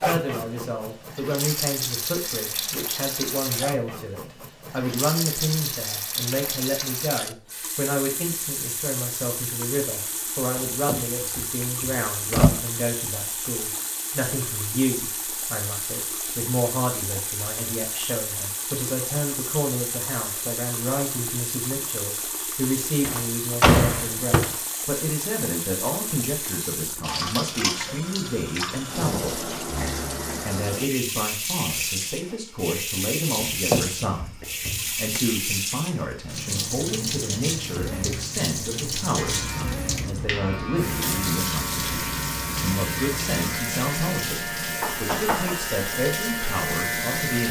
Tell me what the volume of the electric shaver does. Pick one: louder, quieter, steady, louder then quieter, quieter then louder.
steady.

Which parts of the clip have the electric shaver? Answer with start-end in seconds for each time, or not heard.
39.1-47.4.